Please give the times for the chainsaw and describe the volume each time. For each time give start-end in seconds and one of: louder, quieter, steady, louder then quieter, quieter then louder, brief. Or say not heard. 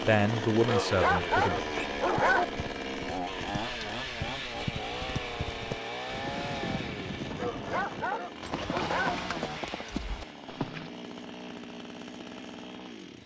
0.0-13.2 quieter.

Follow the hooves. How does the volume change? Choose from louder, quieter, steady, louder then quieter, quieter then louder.
louder.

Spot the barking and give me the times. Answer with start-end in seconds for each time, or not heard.
0.6-2.5, 7.3-9.2.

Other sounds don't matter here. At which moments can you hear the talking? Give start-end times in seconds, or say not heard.
0.0-1.6.